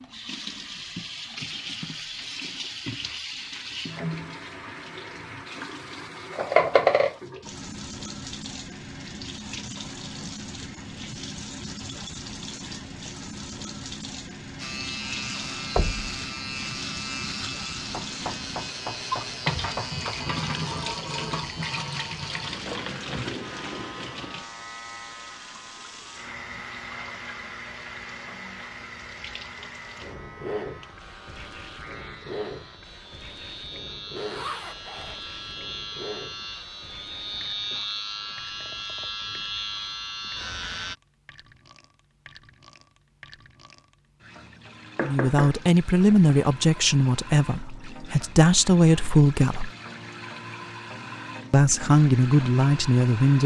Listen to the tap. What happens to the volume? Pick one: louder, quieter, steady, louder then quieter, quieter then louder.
quieter.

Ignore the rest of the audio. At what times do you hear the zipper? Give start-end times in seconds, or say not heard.
34.1-35.1.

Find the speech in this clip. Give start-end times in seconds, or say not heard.
45.0-49.7, 51.5-53.4.